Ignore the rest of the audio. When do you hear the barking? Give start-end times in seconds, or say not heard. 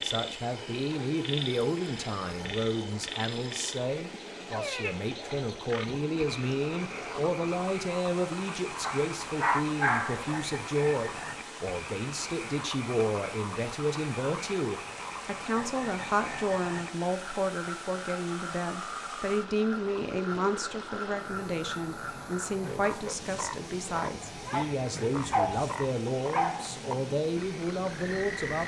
8.8-10.3, 24.2-26.8.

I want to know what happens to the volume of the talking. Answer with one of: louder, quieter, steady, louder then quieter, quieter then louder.
steady.